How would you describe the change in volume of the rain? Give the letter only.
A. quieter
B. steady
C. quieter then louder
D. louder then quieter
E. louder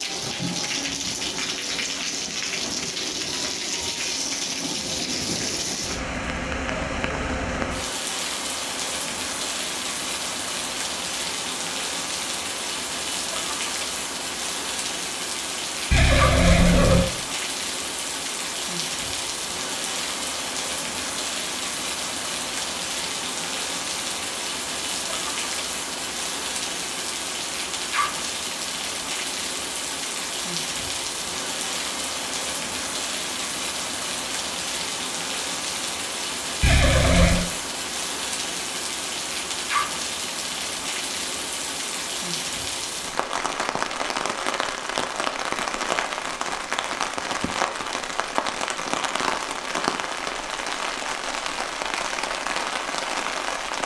B.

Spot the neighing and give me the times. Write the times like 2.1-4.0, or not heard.
15.9-17.1, 36.6-37.5.